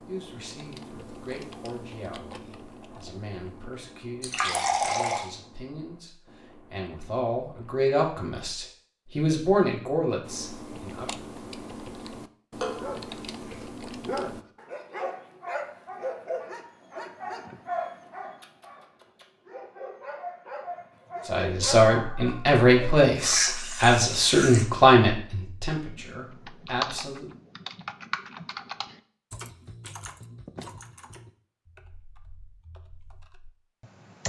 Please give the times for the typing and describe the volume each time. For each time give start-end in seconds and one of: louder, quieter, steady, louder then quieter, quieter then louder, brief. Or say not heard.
0.0-7.8 quieter
10.2-14.4 steady
25.9-34.2 quieter.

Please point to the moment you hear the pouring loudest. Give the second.
5 s.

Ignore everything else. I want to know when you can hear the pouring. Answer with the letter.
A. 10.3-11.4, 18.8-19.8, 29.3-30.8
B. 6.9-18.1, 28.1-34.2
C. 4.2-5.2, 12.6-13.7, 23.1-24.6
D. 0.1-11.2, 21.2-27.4
C.